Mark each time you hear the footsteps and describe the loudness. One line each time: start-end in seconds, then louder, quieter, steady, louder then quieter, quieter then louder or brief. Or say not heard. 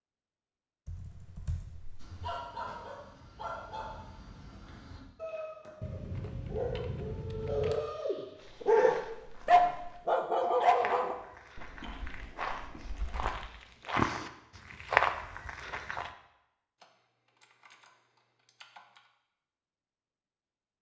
8.3-16.1 louder.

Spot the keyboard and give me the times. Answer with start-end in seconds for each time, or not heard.
0.8-2.2, 5.8-7.8, 11.6-13.4, 16.8-19.0.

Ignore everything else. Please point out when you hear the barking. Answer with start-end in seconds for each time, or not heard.
2.0-11.2.